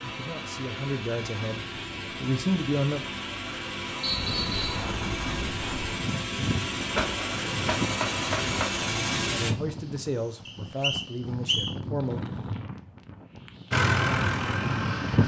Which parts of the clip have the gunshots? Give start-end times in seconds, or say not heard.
7.0-8.9.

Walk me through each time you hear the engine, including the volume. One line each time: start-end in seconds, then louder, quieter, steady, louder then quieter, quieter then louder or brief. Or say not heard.
0.0-9.6 louder
13.7-15.2 brief.